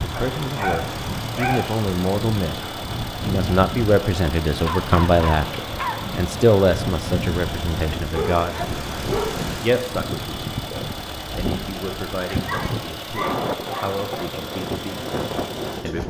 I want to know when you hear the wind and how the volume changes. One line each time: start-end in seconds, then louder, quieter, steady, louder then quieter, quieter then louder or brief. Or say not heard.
0.0-16.0 steady.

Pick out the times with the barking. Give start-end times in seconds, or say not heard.
0.1-1.8, 4.6-6.0, 8.1-9.4, 12.3-14.2.